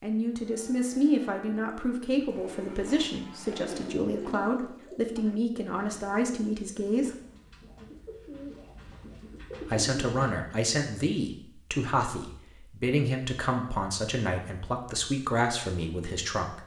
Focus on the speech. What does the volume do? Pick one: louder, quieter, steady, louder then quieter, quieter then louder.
steady.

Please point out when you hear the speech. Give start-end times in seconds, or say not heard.
0.0-7.1, 9.7-16.6.